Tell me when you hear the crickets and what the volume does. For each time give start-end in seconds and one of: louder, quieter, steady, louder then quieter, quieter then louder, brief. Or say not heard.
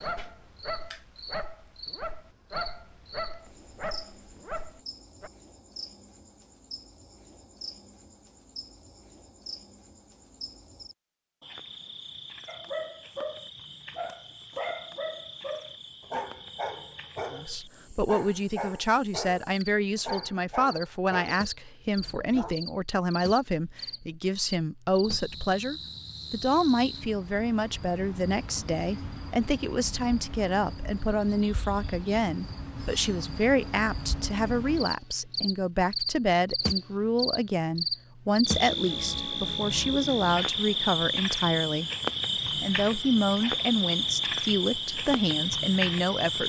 0.0-46.4 louder.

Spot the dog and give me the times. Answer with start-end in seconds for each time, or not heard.
0.0-5.3, 12.4-22.6.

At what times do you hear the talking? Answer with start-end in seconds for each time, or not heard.
17.3-41.9, 42.6-46.4.